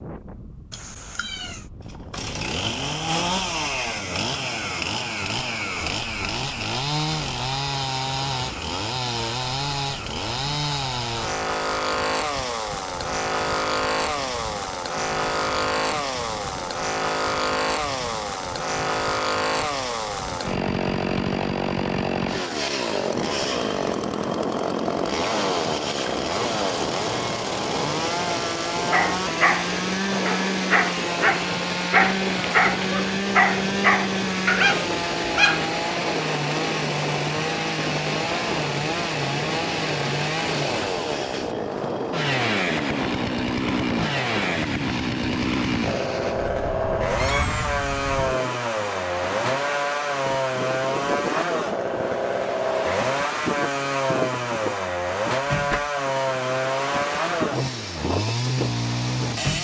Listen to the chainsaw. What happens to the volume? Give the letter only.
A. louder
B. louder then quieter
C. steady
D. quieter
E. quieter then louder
C.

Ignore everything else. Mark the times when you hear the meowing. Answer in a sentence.
You can hear the meowing from 0.7 to 1.6 s and from 47.1 to 47.8 s.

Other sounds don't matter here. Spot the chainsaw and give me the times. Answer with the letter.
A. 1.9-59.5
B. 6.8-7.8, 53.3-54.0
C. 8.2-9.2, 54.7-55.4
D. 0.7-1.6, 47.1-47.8
A.